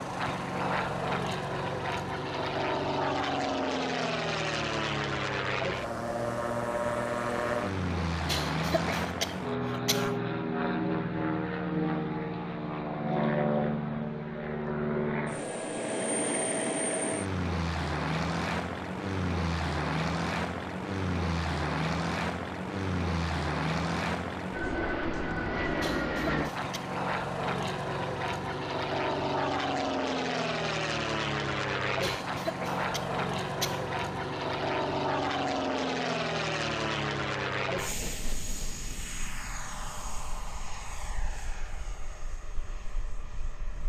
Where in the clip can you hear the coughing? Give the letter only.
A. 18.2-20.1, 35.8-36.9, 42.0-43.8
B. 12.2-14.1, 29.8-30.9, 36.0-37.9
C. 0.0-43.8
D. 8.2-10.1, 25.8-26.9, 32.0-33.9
D.